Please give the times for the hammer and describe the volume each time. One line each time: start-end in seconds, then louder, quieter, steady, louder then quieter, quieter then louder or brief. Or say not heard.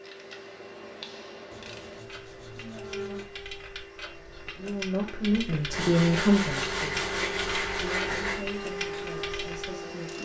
not heard.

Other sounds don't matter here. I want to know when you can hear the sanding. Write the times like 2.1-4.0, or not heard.
1.5-3.3, 5.7-8.4.